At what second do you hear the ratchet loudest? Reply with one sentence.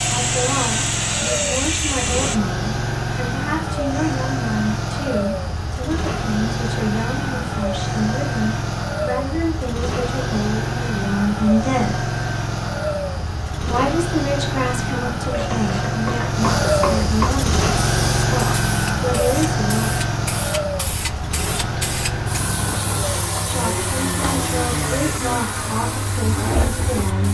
The loudest moment of the ratchet is at 17 seconds.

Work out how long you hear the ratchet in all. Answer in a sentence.
The ratchet can be heard for 2 seconds in total.